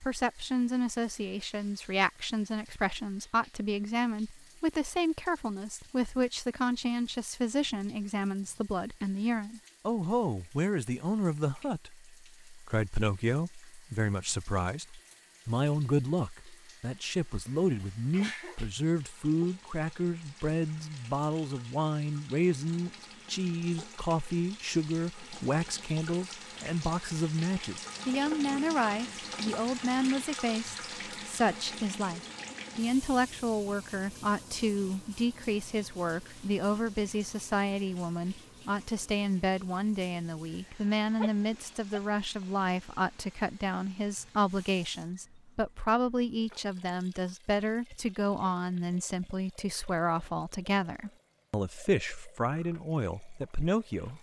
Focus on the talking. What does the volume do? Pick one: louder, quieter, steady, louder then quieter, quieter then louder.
steady.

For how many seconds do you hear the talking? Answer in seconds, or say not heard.
54 s.